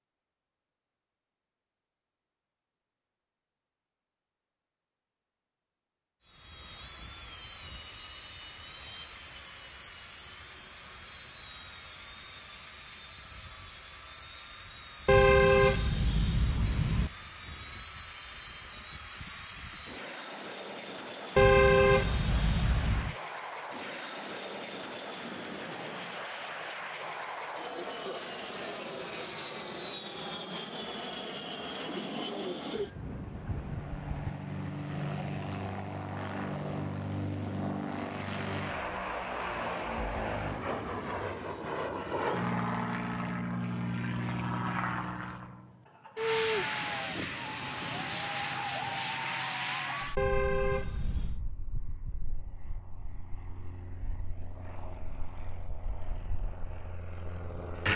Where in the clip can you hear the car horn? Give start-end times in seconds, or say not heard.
15.1-17.1, 21.4-23.1, 50.1-51.4.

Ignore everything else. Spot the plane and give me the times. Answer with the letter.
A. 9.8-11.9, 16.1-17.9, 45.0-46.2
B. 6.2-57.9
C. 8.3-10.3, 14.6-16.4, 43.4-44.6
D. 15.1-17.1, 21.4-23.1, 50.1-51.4
B.